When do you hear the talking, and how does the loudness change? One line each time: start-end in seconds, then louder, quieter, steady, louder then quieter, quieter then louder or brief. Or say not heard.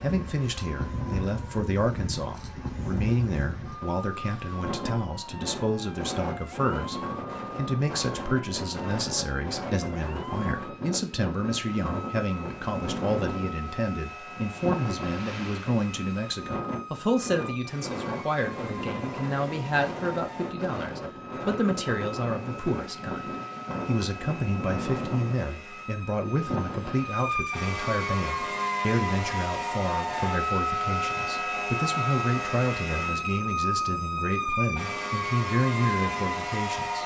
0.0-37.0 steady.